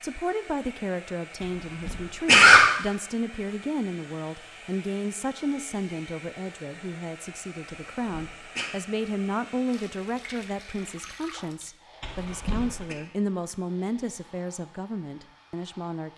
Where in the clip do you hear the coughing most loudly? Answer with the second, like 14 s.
2 s.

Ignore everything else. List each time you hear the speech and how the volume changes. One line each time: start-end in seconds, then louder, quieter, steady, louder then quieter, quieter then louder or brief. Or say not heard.
0.0-16.1 steady.